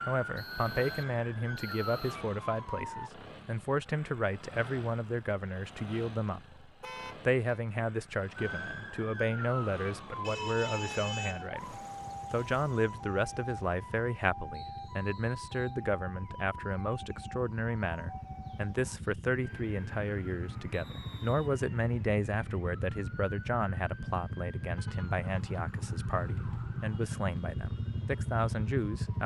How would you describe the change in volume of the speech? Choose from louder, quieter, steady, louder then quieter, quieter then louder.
steady.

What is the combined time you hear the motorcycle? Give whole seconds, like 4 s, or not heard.
29 s.